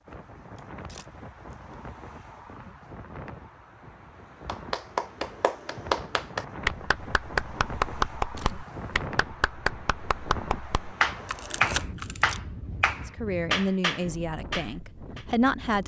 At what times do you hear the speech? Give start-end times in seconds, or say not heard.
13.1-15.8.